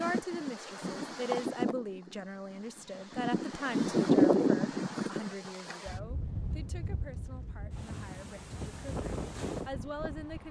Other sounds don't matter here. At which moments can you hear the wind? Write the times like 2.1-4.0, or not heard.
0.0-10.4.